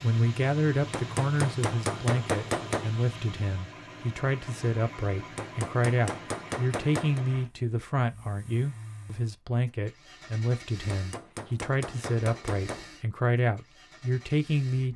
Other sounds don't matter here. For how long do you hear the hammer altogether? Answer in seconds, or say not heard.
6 s.